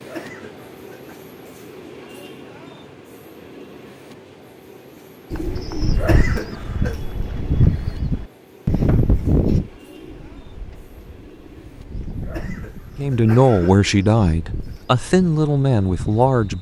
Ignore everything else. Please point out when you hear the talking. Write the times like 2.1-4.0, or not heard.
12.9-16.5.